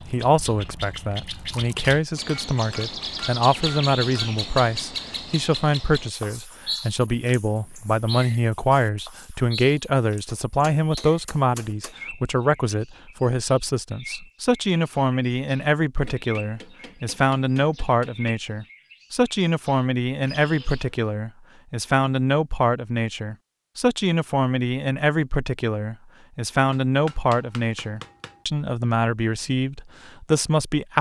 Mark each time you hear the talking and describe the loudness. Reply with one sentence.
The talking can be heard from 0.1 to 30.9 s, at a steady volume.